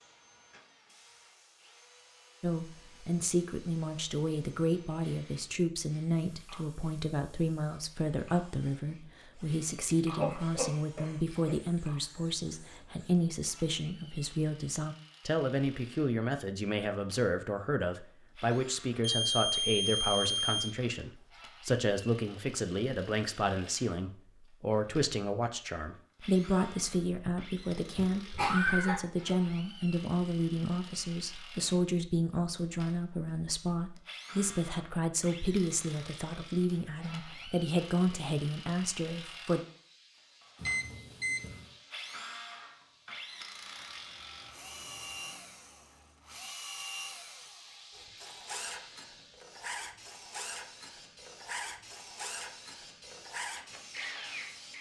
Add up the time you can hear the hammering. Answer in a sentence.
You can't hear the hammering here.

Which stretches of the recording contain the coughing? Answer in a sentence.
The coughing can be heard from 10.2 to 11.6 s and from 27.9 to 29.0 s.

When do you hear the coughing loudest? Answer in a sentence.
The volume of the coughing peaks at 29 seconds.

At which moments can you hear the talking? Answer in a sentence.
You can hear the talking from 2.4 to 39.6 s.